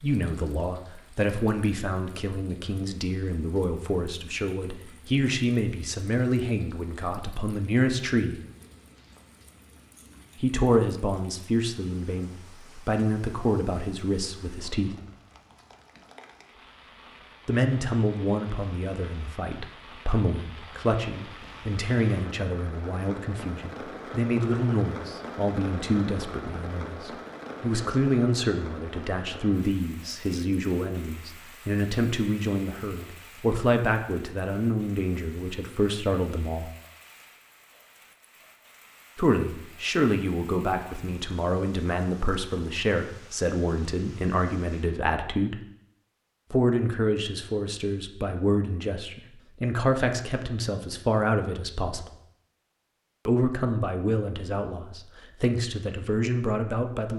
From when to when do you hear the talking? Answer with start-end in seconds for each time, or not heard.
0.0-8.4, 10.4-14.9, 17.4-36.6, 39.1-45.5, 46.5-52.1, 53.2-57.1.